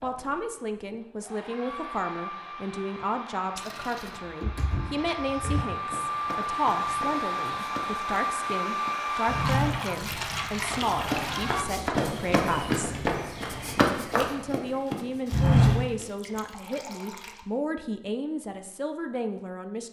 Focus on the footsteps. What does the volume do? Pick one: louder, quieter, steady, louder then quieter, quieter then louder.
louder.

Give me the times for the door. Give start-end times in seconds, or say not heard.
4.4-5.7.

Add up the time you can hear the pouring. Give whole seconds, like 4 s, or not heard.
4 s.